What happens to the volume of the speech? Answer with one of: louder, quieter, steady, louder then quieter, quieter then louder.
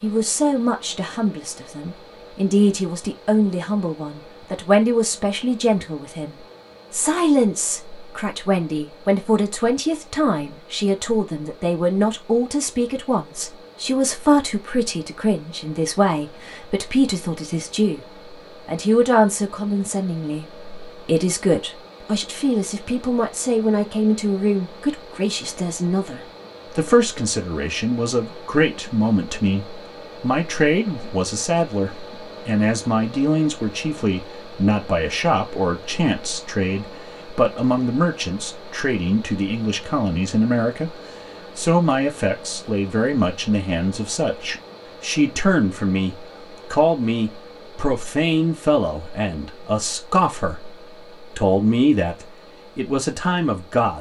steady.